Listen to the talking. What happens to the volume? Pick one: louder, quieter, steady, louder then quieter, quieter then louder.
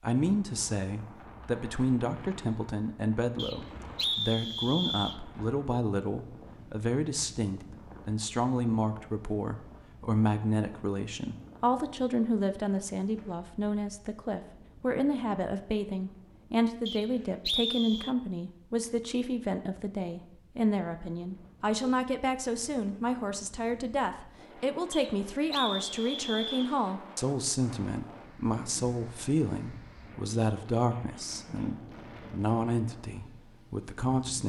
steady.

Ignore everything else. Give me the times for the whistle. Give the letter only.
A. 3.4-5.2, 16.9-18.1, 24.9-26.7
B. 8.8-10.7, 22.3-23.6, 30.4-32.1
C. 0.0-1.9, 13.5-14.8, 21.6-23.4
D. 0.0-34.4
A.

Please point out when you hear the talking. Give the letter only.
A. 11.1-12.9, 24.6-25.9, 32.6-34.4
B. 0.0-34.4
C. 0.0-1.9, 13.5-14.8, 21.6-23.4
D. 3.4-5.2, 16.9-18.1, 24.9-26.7
B.